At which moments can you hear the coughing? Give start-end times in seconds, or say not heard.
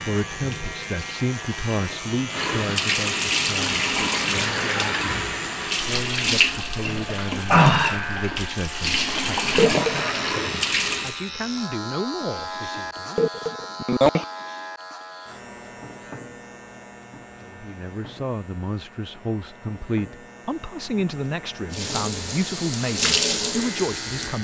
9.2-10.1, 12.8-14.2.